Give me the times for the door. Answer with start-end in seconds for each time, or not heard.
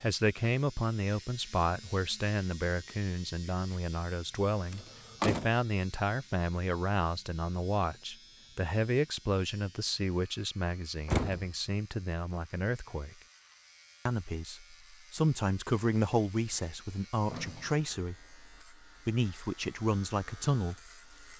4.7-5.5, 11.1-11.5, 16.3-17.9.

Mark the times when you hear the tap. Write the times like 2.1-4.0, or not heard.
not heard.